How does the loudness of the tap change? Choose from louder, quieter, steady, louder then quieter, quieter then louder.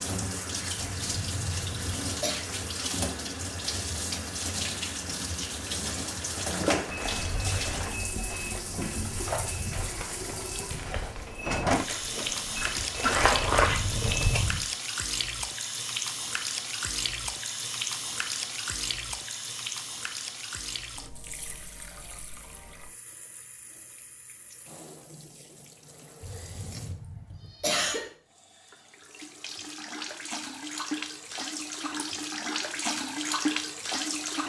quieter then louder.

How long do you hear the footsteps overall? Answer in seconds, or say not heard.
8 s.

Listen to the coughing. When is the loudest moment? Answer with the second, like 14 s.
28 s.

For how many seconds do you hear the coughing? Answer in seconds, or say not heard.
3 s.